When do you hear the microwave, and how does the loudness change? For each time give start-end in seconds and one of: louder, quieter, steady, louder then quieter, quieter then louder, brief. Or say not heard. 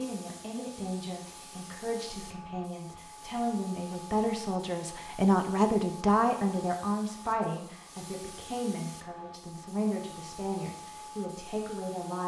not heard.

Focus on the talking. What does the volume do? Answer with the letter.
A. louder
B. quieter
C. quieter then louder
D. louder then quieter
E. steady
D.